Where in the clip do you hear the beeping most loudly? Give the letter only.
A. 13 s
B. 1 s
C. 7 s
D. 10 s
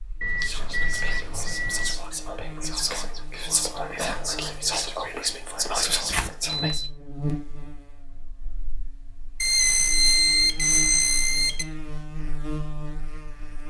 D.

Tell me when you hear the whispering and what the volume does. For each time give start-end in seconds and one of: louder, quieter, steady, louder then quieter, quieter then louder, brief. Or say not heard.
0.3-6.8 louder.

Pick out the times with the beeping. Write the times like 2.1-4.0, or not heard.
0.2-1.9, 6.0-6.9, 9.4-11.7.